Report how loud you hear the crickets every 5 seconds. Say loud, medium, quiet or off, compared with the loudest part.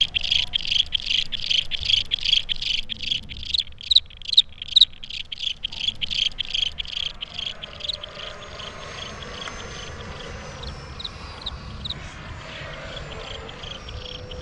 loud, medium, quiet.